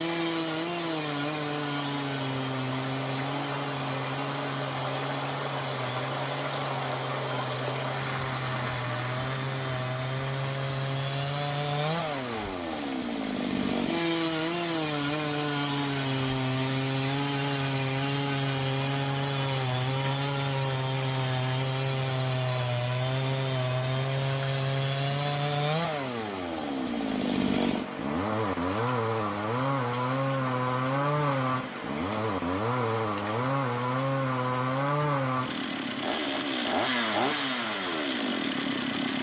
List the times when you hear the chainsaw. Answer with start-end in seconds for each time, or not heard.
0.0-39.1.